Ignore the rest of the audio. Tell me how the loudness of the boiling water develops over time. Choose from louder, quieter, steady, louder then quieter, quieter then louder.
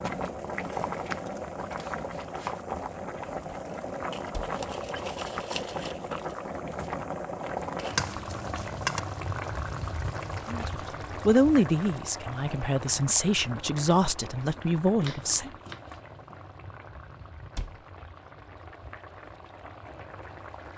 quieter.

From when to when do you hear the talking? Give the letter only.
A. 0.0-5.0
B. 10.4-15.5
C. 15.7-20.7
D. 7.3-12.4
B.